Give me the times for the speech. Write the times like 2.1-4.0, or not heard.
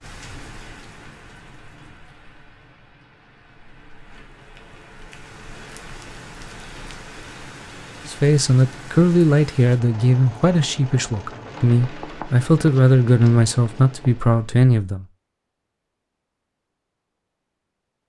8.1-15.1.